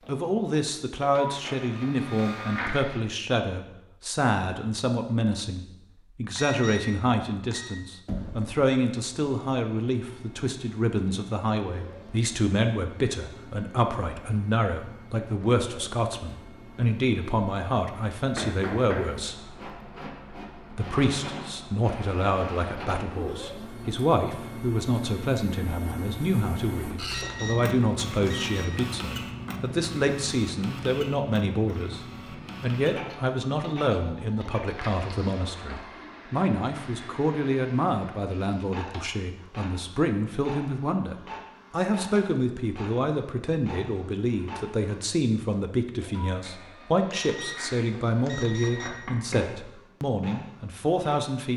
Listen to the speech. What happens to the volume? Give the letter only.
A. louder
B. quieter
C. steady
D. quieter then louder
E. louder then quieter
C.